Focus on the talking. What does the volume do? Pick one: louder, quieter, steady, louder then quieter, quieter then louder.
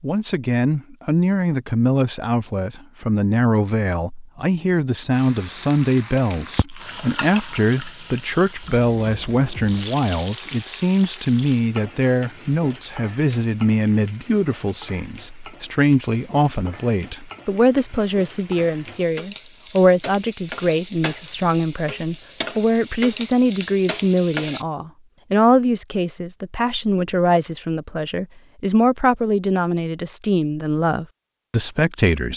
steady.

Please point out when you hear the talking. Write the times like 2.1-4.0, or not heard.
0.0-32.3.